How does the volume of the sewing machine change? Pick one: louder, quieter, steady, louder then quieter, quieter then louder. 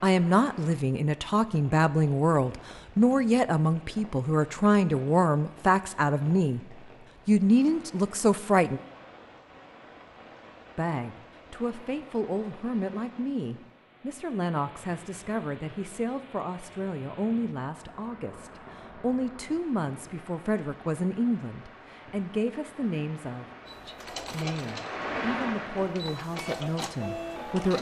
quieter then louder.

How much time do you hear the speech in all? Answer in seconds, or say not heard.
25 s.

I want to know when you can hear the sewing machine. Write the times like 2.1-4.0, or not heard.
23.6-27.7.